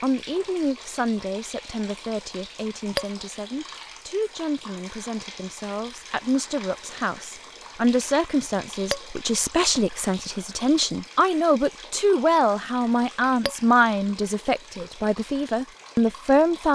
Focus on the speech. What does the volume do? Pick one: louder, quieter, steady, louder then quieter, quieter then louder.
louder.